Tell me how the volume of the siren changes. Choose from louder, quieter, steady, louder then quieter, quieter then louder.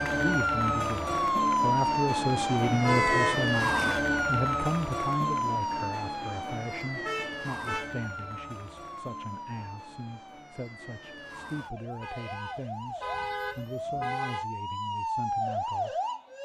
quieter then louder.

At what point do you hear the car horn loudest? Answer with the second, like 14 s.
3 s.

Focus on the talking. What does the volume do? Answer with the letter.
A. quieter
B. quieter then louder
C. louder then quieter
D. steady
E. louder
A.